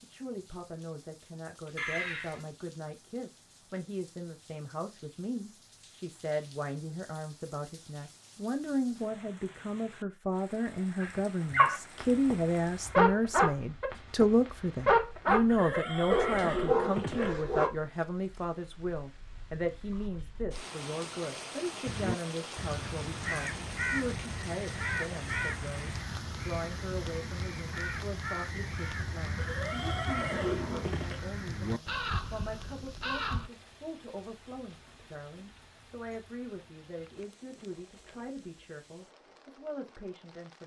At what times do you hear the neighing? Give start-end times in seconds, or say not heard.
1.8-2.5, 15.4-17.4, 29.4-31.2.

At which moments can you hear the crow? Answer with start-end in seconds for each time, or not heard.
21.9-33.5.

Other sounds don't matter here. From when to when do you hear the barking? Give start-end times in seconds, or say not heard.
11.0-17.7.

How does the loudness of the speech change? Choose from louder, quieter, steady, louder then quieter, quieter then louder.
louder then quieter.